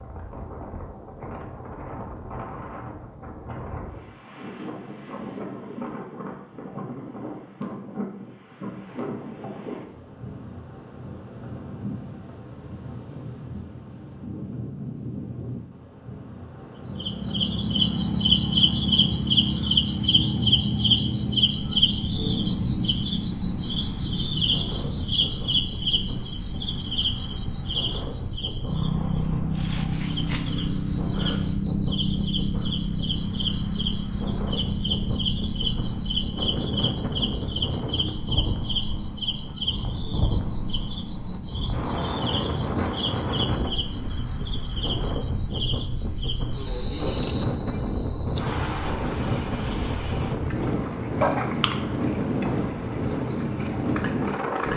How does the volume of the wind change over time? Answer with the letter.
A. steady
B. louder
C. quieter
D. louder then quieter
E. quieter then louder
B.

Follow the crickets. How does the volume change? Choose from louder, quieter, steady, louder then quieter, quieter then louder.
quieter.